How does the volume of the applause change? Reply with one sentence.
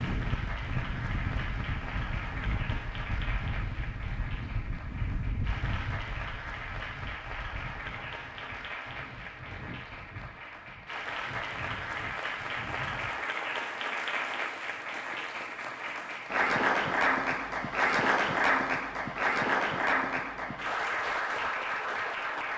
The volume of the applause goes up.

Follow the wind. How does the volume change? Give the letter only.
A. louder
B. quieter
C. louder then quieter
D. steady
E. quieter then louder
B.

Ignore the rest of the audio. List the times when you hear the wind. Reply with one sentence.
You can hear the wind from 0.0 to 13.2 s.